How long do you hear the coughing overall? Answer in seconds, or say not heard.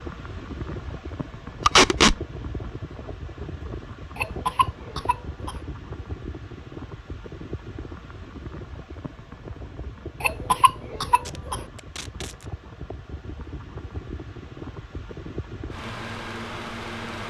3 s.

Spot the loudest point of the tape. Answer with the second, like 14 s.
2 s.